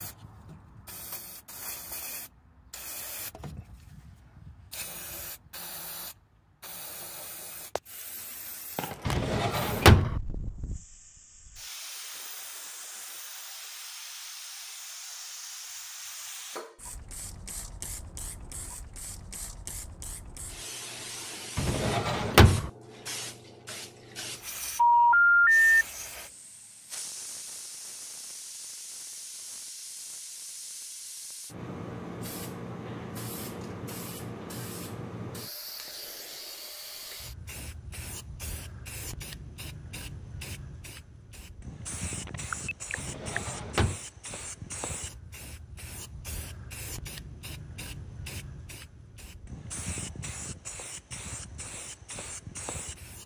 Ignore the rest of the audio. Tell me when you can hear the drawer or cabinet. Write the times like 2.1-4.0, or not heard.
9.1-10.2, 21.6-22.7, 43.0-44.0.